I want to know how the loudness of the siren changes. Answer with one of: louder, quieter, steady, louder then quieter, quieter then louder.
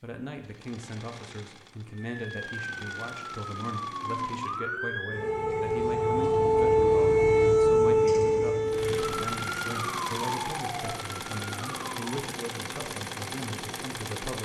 louder then quieter.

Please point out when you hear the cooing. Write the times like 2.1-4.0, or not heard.
not heard.